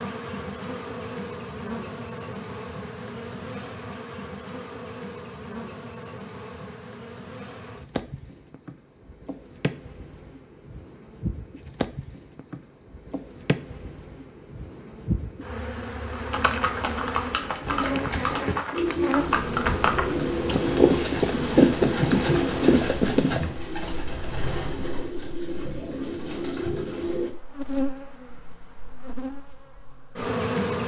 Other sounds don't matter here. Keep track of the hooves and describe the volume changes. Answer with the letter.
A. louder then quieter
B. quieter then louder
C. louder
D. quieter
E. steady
C.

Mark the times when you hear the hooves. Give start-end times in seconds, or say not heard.
16.1-23.4.